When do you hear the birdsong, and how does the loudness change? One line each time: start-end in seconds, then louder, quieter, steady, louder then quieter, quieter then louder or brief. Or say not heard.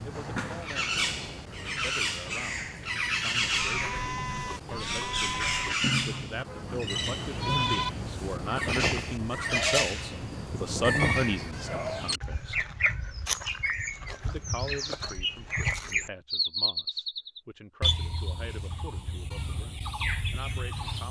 0.0-21.0 steady.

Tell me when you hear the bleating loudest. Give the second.
8 s.